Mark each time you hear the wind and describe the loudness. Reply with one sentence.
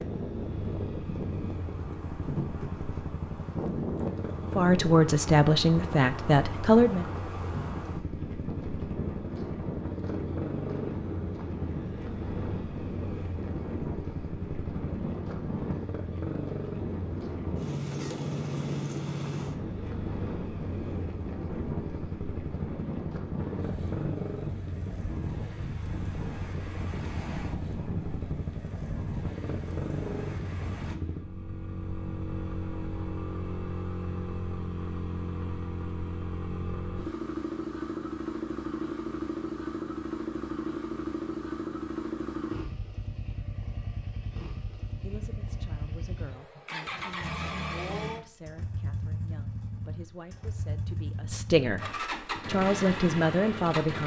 The wind can be heard from 0.0 to 30.9 s, at a steady volume.